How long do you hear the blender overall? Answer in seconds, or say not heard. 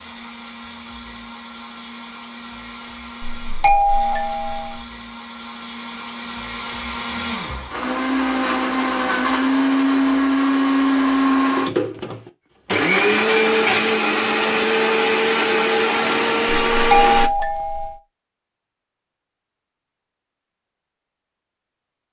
17 s.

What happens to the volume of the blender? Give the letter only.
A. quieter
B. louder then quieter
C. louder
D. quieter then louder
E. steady
C.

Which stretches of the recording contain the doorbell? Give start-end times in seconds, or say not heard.
3.2-4.8, 16.7-18.0.